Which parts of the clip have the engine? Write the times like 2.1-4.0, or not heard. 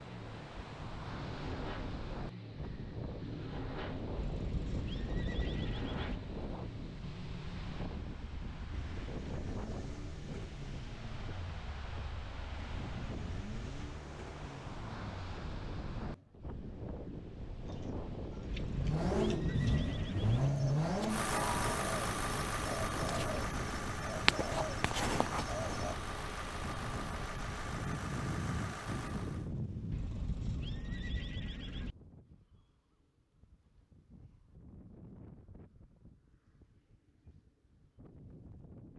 0.0-16.4, 18.6-29.5.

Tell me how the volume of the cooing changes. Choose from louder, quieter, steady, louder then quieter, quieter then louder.
quieter then louder.